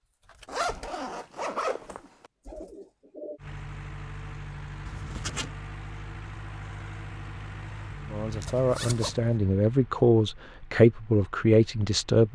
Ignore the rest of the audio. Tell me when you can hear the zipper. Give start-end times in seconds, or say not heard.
0.5-2.3, 4.8-5.5, 8.3-9.2.